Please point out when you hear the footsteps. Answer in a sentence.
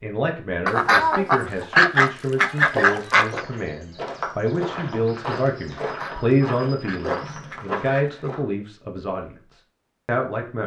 The footsteps can be heard from 2.6 to 8.4 s.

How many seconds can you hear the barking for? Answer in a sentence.
The barking can't be heard in this clip.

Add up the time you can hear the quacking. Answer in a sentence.
You can hear the quacking for 5 seconds altogether.